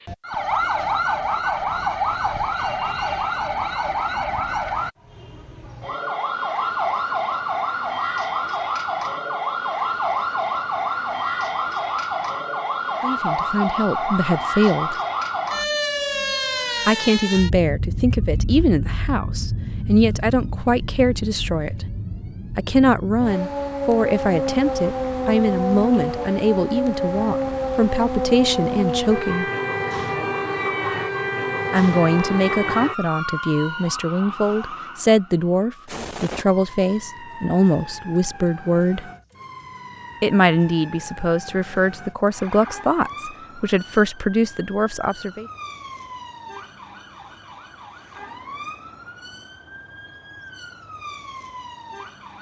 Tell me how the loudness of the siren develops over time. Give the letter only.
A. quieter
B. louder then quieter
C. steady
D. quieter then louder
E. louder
A.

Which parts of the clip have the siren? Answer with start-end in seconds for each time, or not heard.
0.1-52.3.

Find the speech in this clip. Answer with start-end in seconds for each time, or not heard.
13.0-14.9, 16.9-21.9, 22.6-29.4, 31.7-39.0, 40.2-45.5.